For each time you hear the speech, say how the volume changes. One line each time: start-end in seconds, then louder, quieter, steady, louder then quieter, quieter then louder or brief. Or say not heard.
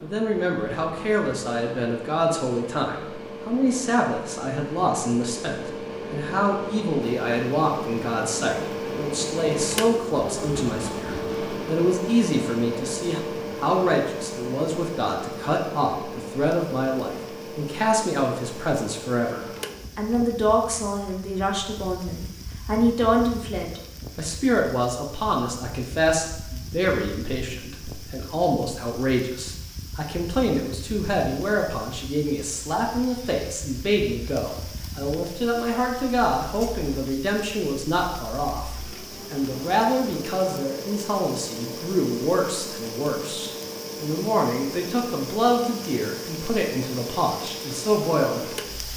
0.0-48.9 steady.